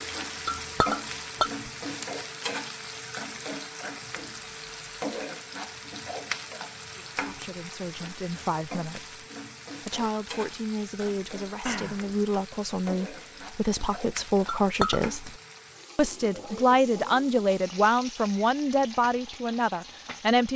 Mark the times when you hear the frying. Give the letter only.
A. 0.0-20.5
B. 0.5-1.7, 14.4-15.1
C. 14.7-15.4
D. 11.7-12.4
A.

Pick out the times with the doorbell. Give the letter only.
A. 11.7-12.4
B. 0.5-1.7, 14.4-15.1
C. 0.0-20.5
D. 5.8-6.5
A.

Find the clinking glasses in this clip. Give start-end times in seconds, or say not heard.
0.5-1.7, 14.4-15.1.